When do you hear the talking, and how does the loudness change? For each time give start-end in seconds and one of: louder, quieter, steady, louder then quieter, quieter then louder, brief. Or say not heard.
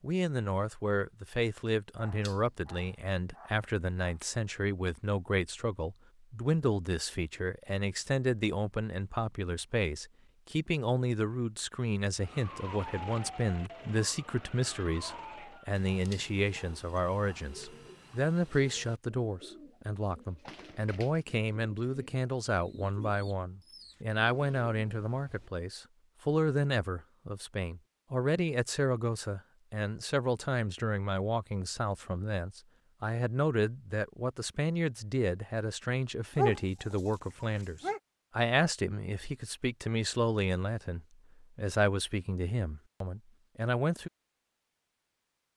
0.0-44.1 steady.